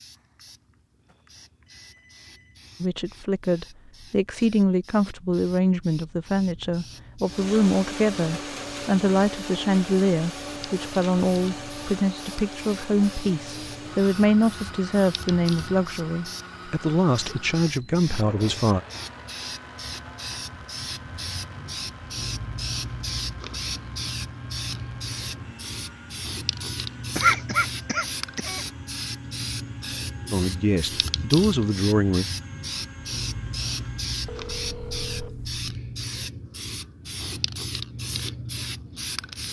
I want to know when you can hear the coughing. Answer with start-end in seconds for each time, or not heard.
27.1-28.6.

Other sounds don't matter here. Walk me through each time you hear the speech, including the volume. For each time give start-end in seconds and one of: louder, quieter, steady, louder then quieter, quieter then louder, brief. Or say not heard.
2.8-18.8 steady
30.3-32.2 brief.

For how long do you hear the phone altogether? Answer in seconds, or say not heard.
4 s.